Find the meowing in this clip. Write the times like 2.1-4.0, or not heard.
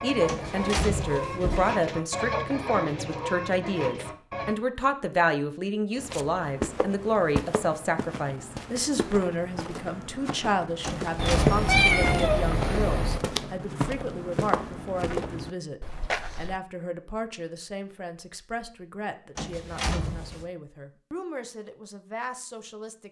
11.2-13.2.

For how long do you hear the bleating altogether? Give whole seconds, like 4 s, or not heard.
not heard.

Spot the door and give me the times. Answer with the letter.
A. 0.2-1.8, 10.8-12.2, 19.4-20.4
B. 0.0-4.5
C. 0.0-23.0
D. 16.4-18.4
A.